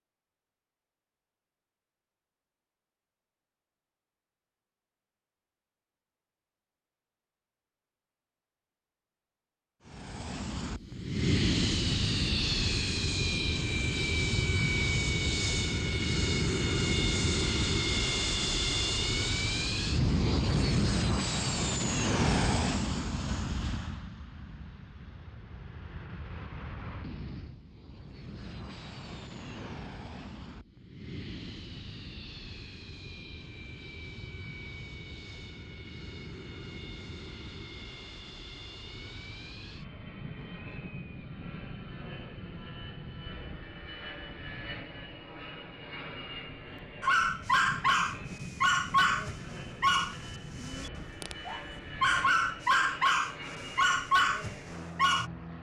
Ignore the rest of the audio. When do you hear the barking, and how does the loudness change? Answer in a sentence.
The barking can be heard from 47.0 to 55.3 s, getting quieter then louder.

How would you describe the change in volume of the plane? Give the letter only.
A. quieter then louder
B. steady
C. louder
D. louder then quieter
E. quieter
E.